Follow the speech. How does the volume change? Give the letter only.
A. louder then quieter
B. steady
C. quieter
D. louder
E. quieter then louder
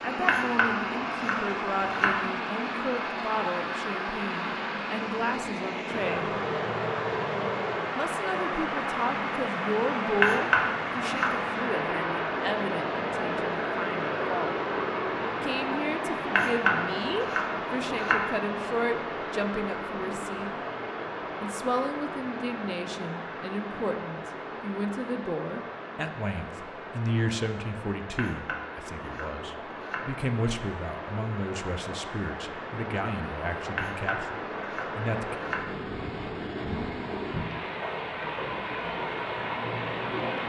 B.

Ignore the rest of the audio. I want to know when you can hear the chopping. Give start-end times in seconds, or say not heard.
0.2-2.2, 10.2-11.3, 16.4-18.2, 28.1-30.1, 33.8-35.7.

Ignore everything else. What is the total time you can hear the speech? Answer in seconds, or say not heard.
32 s.